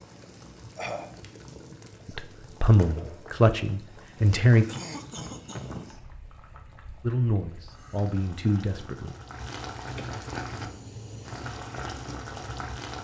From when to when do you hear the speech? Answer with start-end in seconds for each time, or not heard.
2.0-4.7, 7.0-9.2.